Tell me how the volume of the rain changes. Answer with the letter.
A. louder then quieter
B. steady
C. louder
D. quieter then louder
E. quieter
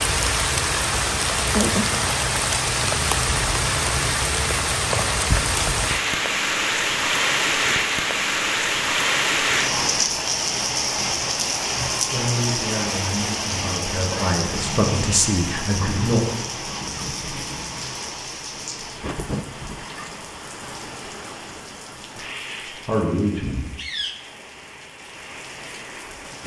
E.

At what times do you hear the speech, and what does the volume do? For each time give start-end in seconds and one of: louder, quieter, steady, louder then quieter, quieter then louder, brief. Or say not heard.
12.1-16.2 louder
22.8-23.7 brief.